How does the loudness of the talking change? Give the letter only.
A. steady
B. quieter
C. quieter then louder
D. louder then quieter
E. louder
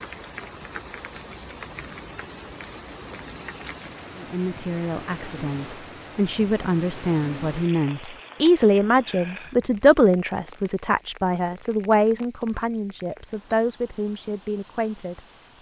D.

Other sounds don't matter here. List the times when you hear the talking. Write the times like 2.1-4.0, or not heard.
4.2-15.5.